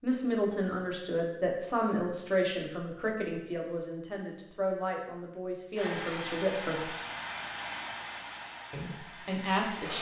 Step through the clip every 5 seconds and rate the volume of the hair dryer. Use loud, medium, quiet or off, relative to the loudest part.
off, loud.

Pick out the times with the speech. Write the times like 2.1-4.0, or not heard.
0.0-6.9, 8.7-9.9.